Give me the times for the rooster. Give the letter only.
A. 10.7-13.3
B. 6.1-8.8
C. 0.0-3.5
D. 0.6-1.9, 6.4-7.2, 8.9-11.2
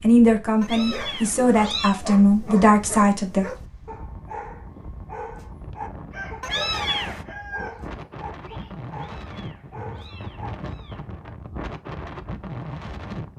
B.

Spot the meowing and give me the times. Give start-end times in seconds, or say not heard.
0.6-1.9, 6.4-7.2, 8.9-11.2.